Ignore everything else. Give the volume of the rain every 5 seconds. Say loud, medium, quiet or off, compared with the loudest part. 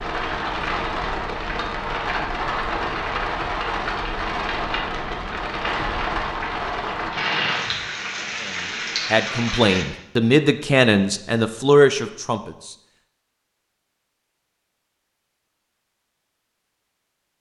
loud, loud, off, off.